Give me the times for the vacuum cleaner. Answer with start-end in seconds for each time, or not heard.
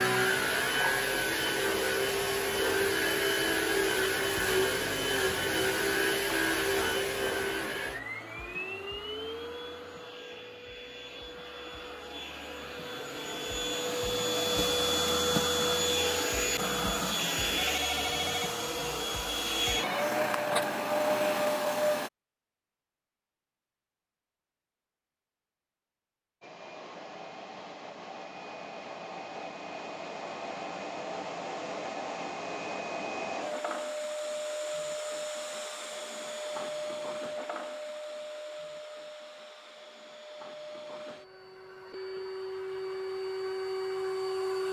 0.0-22.1, 26.4-44.6.